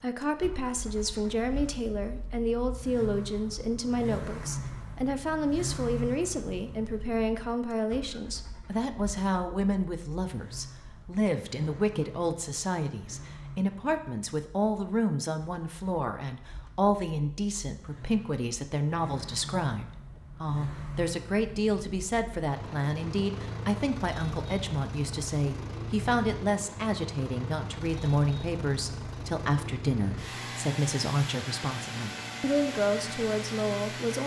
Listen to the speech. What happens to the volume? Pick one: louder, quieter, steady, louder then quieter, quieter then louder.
steady.